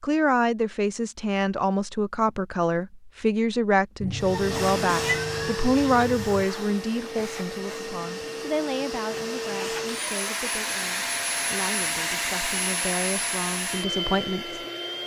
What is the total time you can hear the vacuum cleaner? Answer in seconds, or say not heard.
11 s.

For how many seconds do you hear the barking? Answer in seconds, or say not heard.
not heard.